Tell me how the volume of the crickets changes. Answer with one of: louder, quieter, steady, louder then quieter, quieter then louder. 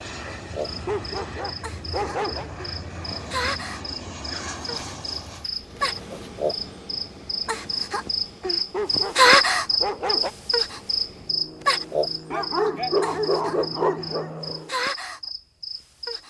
louder then quieter.